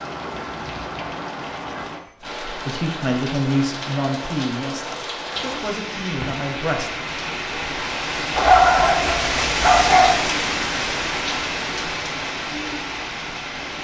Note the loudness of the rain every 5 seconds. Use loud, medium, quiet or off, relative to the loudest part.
medium, loud, loud.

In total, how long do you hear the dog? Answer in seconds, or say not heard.
2 s.